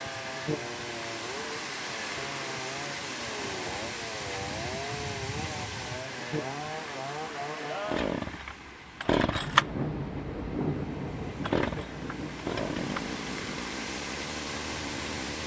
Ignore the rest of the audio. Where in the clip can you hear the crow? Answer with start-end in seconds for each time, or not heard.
not heard.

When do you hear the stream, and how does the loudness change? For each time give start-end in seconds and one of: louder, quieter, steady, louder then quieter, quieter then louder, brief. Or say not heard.
0.0-15.4 quieter then louder.